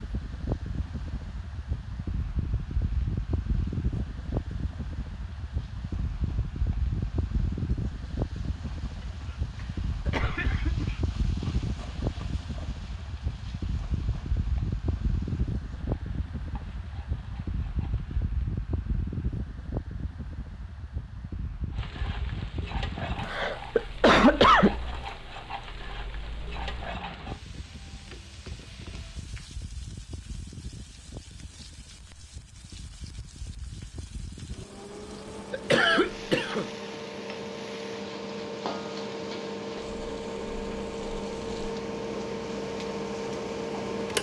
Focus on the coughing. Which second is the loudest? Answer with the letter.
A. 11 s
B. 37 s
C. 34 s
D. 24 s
D.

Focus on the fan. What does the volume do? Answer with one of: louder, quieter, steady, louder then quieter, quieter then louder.
quieter then louder.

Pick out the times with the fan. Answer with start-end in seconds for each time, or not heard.
0.0-44.1.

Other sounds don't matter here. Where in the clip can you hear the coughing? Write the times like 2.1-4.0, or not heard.
10.1-10.9, 23.2-24.8, 35.5-36.6.